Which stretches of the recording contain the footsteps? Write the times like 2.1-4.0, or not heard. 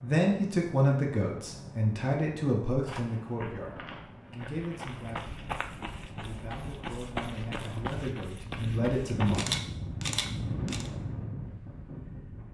2.9-9.4.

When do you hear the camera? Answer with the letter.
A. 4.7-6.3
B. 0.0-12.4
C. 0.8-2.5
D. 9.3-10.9
D.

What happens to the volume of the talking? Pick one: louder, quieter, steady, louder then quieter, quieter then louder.
quieter then louder.